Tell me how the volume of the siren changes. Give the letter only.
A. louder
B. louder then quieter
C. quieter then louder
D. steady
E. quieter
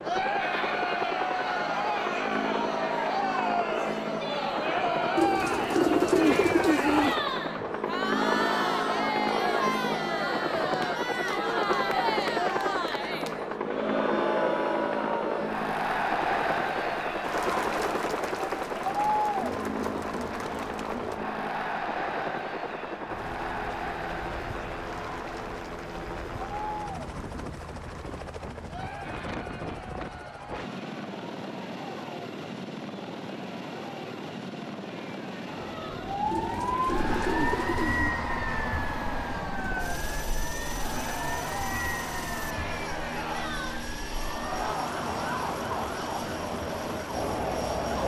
E.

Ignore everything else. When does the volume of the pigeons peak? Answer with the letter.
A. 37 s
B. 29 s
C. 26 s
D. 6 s
D.